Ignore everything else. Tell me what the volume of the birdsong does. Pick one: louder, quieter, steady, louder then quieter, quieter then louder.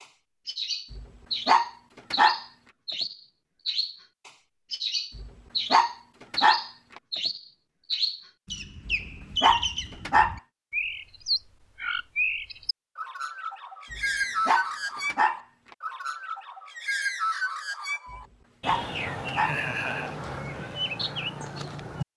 steady.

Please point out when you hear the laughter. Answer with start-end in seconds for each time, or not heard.
19.4-20.1.